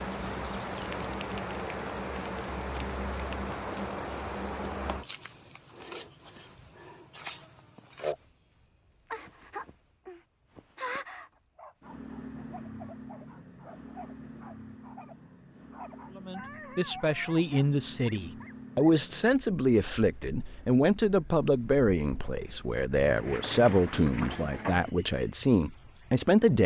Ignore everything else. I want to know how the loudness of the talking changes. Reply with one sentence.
The volume of the talking stays about the same.